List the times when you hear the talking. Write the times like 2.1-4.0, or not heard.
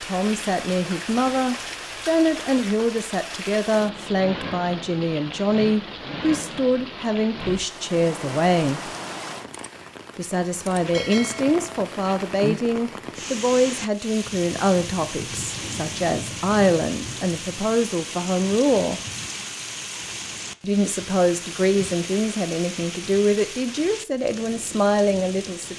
0.0-8.9, 10.2-19.0, 20.6-25.7.